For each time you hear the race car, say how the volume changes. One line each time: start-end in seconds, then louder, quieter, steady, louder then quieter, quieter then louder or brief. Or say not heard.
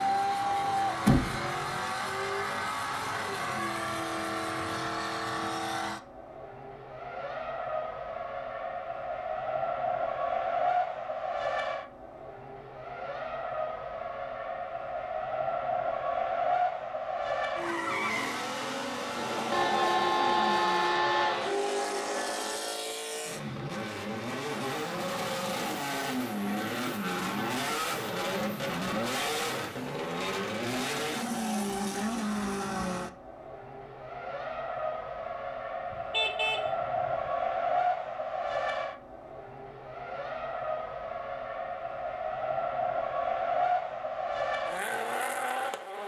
0.0-46.0 steady.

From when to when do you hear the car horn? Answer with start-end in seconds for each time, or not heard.
0.7-1.8, 19.5-21.5, 35.9-37.3.